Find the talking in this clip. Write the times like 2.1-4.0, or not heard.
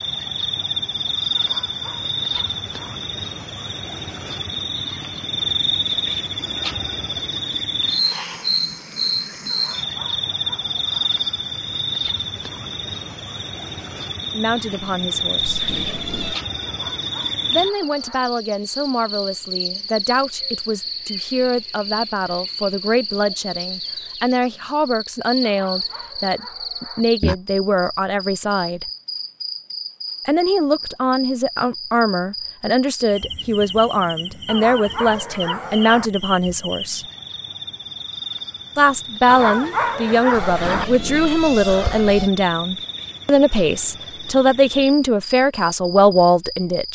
14.3-15.6, 17.5-28.9, 30.2-37.0, 38.8-46.9.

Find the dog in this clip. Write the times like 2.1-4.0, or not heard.
1.4-3.0, 9.4-11.1, 16.6-18.2, 25.4-27.1, 34.5-36.1, 39.2-40.9.